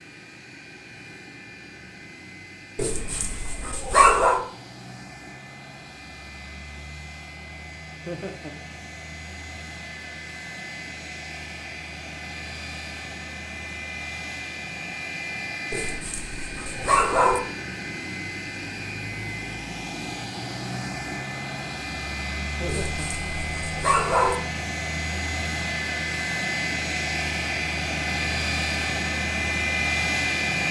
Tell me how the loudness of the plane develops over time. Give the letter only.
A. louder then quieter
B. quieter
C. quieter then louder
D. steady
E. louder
E.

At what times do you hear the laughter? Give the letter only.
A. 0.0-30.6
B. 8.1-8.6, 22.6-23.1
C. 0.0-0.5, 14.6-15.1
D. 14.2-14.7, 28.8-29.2
B.